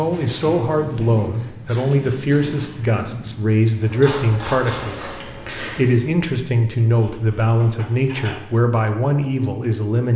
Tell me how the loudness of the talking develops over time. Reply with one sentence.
The loudness of the talking stays about the same.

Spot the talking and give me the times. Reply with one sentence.
The talking can be heard from 0.0 to 10.1 s.